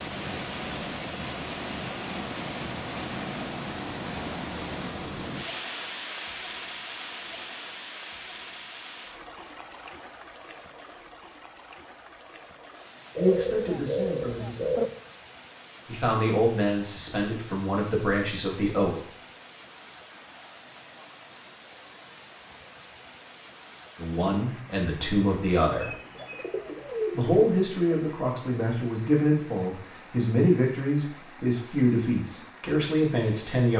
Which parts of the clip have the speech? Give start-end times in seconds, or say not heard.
13.2-15.0, 15.8-19.1, 23.9-25.9, 27.1-33.7.